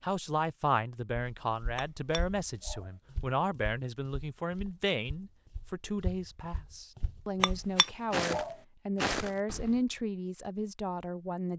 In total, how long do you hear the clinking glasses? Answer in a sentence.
You can hear the clinking glasses for 2 seconds altogether.